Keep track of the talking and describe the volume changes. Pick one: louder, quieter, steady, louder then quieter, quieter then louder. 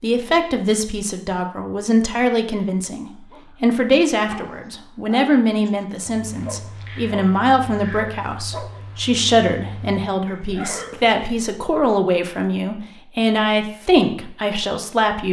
steady.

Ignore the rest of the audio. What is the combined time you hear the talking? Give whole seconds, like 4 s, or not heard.
15 s.